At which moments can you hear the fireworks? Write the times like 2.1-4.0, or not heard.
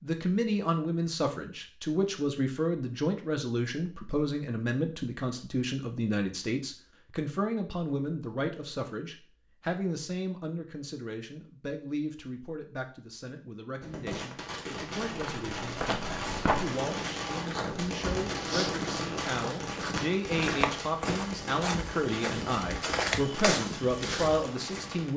13.8-25.1.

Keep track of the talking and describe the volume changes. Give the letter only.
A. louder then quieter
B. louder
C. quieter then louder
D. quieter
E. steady
C.